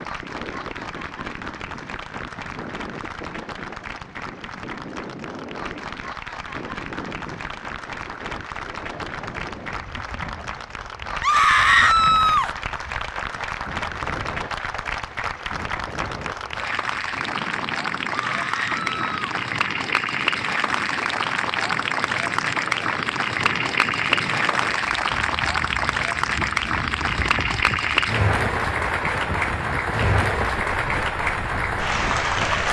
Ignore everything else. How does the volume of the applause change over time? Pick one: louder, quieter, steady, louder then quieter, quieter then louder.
louder.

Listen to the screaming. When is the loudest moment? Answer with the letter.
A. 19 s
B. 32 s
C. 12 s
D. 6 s
C.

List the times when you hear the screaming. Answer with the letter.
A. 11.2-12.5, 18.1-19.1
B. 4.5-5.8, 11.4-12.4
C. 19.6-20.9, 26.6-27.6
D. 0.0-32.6
A.